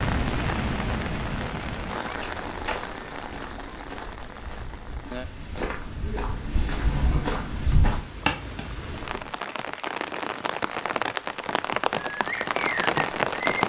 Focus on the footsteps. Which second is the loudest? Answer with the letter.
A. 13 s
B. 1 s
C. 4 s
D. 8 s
D.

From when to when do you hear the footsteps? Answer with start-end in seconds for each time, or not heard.
2.0-9.3.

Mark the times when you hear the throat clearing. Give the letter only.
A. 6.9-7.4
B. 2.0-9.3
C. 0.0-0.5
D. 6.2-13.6
A.